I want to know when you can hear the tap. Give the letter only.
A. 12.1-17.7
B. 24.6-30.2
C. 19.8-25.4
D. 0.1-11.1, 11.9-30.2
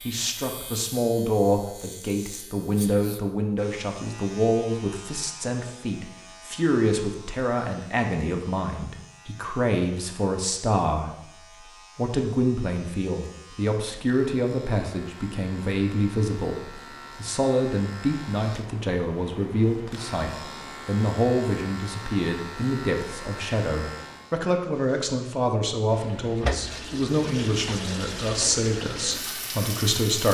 B.